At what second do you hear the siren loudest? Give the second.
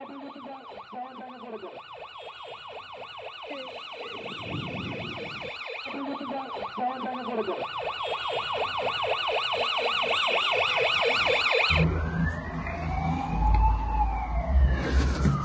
11 s.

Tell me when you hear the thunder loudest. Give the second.
5 s.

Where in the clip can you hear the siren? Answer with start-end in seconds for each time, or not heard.
0.0-15.4.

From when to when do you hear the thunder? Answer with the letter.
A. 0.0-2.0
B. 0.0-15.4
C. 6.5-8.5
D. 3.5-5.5
D.